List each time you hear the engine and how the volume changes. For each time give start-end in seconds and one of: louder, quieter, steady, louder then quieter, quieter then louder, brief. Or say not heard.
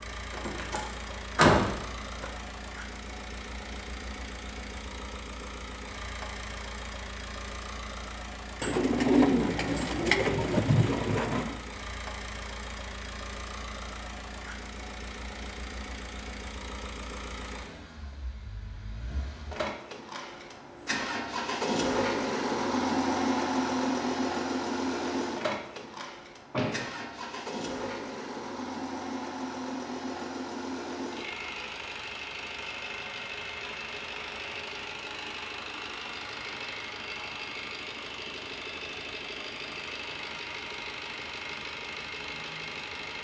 0.0-43.1 louder then quieter.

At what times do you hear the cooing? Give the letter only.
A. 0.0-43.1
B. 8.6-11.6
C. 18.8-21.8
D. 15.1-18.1
B.